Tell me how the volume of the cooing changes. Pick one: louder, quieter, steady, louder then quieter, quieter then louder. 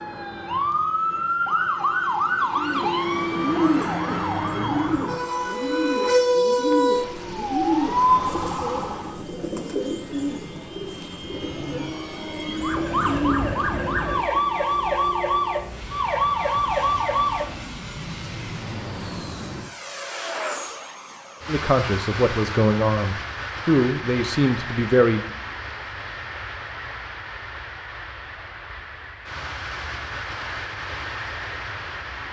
quieter.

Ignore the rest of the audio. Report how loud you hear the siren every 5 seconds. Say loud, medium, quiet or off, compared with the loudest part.
loud, loud, loud, loud, off, off, off.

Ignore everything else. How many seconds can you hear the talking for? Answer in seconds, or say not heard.
4 s.